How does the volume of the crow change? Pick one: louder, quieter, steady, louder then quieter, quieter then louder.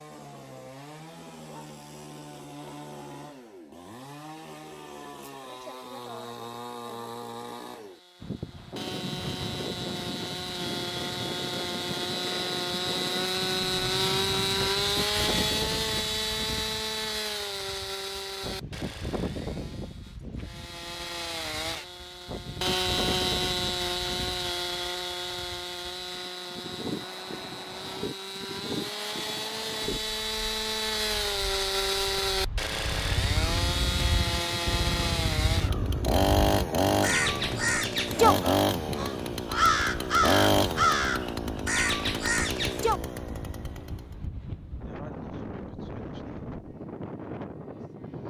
louder.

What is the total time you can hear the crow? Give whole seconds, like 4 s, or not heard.
10 s.